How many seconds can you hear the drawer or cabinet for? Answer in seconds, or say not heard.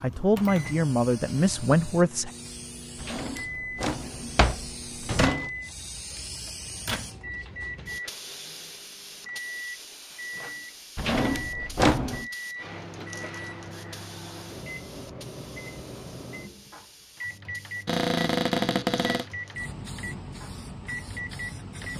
5 s.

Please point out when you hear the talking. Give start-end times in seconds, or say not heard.
0.0-2.3.